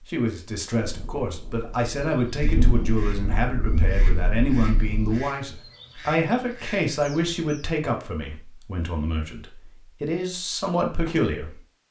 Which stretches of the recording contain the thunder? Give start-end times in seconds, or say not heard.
0.8-5.2.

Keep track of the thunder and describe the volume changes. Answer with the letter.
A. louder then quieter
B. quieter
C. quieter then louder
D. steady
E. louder
A.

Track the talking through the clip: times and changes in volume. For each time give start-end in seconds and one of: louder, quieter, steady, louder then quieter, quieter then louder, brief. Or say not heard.
0.1-11.6 steady.